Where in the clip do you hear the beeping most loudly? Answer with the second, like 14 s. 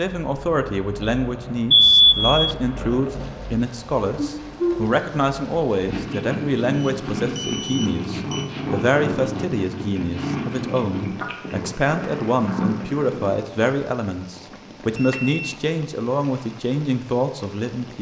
2 s.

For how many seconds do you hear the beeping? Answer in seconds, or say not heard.
4 s.